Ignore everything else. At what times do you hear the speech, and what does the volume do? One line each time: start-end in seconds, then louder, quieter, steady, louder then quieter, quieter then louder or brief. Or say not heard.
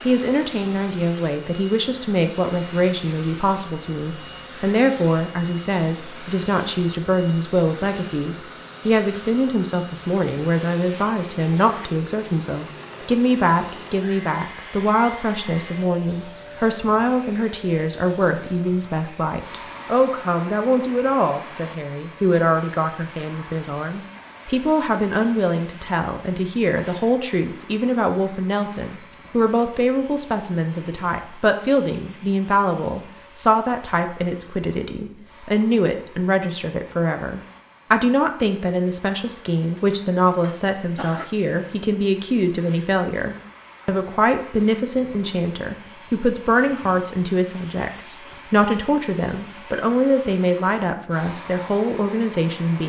0.1-52.8 steady.